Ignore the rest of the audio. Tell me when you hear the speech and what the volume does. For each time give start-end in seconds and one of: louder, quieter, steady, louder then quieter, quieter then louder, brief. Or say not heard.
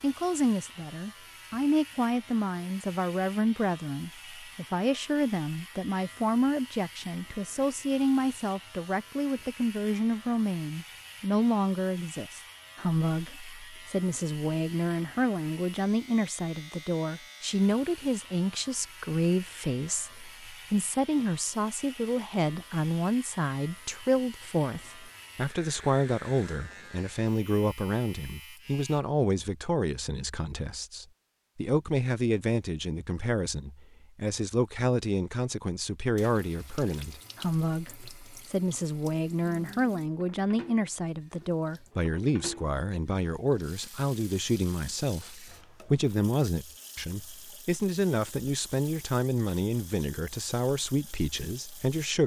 0.0-52.2 steady.